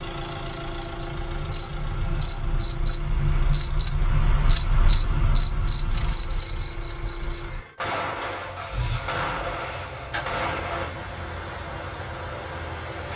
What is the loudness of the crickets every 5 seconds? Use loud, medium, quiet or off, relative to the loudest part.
loud, loud, off.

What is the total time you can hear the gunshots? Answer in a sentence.
The gunshots can be heard for 3 seconds in total.